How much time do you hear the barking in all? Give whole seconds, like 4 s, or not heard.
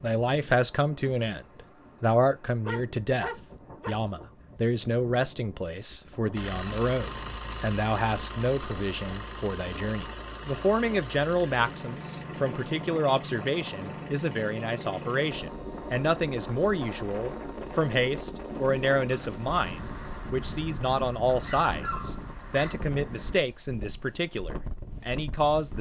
3 s.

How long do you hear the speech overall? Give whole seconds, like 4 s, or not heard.
26 s.